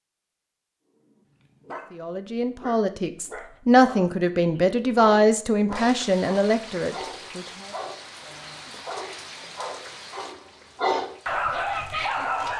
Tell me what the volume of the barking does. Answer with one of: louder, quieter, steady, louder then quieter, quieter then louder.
louder.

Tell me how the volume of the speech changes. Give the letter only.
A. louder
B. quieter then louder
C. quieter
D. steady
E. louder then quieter
E.